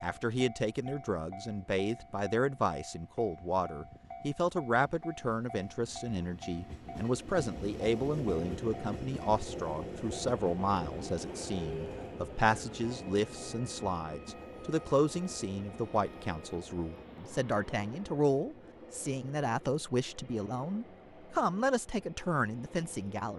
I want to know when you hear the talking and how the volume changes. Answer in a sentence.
The talking can be heard from 0.0 to 23.3 s, at a steady volume.